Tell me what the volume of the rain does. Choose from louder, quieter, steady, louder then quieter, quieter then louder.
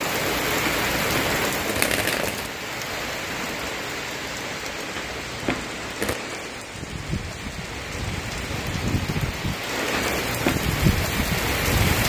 quieter then louder.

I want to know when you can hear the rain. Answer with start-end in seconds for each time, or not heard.
0.0-12.0.